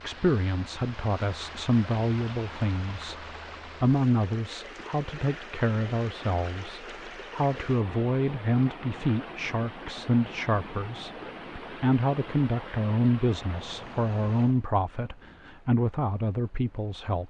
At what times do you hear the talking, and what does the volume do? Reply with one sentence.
The talking can be heard from 0.0 to 17.2 s, at a steady volume.